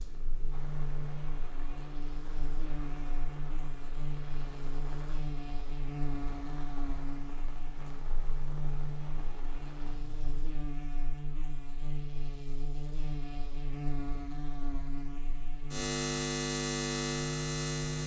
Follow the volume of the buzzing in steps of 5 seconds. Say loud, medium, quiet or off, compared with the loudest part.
medium, medium, medium, loud.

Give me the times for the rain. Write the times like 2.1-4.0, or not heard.
0.0-10.4.